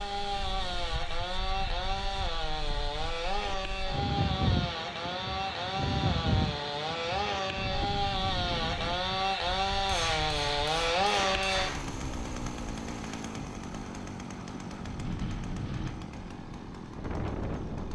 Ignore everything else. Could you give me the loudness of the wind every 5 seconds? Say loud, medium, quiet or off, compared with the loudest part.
loud, loud, medium, loud.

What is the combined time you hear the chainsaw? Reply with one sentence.
You can hear the chainsaw for 18 seconds altogether.